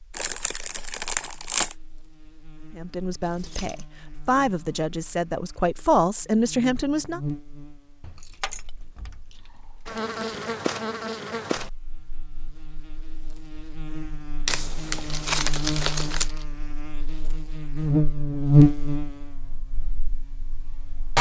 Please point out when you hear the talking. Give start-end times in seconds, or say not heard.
2.7-7.2.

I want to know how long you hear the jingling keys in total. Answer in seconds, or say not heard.
3 s.